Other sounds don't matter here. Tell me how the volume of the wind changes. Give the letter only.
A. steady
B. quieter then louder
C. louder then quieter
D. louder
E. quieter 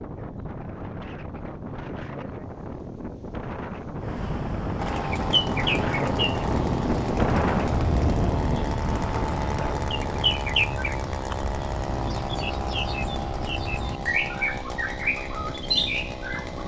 C.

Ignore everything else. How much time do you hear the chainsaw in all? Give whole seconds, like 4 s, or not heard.
12 s.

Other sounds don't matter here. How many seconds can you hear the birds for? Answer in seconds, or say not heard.
13 s.